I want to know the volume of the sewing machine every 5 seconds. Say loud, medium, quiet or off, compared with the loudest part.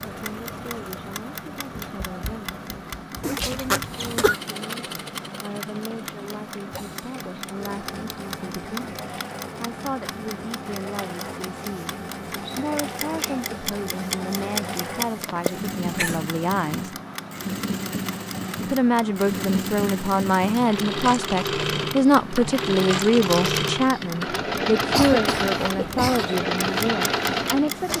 quiet, quiet, medium, medium, loud, loud.